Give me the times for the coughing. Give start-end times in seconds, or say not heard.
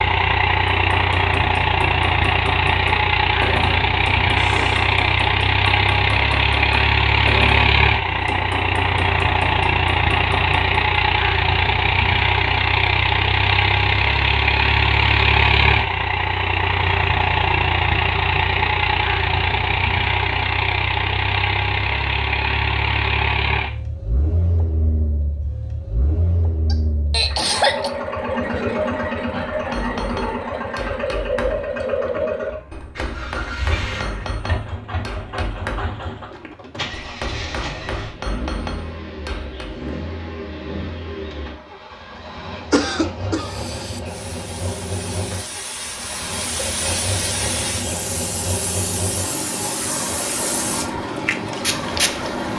4.3-5.0, 26.7-27.9, 42.7-43.6.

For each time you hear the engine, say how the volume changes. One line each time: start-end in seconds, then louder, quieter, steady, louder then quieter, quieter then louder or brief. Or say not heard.
0.0-52.5 quieter.